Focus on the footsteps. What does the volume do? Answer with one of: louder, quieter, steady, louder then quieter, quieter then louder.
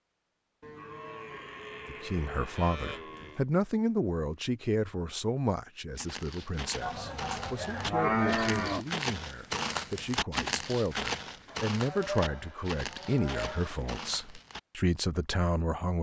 louder then quieter.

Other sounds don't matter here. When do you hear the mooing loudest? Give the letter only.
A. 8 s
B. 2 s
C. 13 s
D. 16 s
A.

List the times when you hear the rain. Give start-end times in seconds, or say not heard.
not heard.